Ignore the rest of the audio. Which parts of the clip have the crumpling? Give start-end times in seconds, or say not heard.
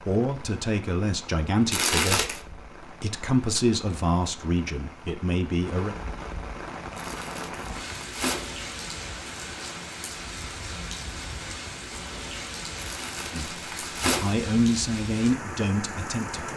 1.7-2.4, 7.0-8.5, 12.8-14.3.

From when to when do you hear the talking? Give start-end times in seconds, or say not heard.
0.1-6.0, 13.3-16.5.